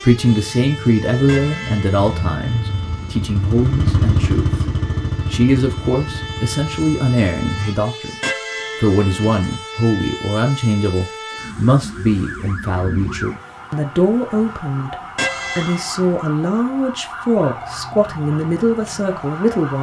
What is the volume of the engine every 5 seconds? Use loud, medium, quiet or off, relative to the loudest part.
loud, medium, off, off.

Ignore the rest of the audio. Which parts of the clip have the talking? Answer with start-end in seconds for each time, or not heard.
0.0-4.6, 5.3-8.2, 8.8-14.9, 15.6-19.7.